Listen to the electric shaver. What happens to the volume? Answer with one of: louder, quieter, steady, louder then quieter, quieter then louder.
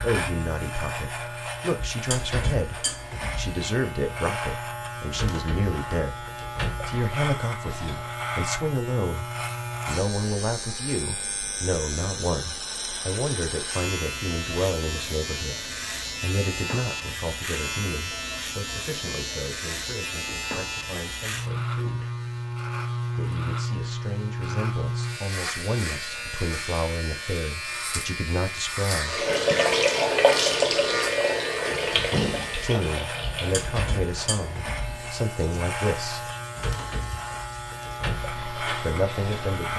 steady.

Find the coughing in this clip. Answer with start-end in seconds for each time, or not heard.
not heard.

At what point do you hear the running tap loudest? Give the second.
30 s.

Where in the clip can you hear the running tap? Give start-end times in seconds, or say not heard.
29.1-39.6.